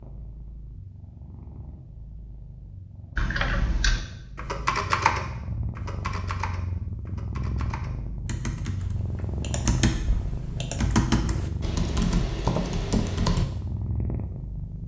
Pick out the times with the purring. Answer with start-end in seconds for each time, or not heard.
0.0-14.8.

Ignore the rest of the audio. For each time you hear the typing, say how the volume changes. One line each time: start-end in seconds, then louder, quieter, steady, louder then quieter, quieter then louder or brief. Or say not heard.
3.1-13.4 quieter then louder.